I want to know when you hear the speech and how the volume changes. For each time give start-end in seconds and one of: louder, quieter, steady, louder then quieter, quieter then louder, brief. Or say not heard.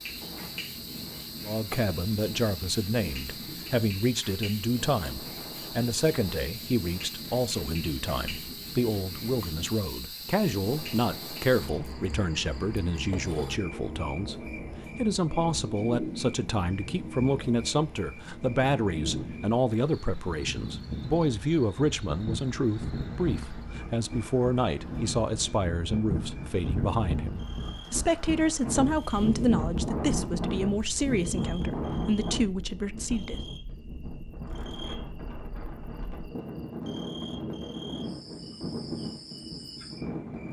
1.4-33.4 steady.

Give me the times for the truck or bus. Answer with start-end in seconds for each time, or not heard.
not heard.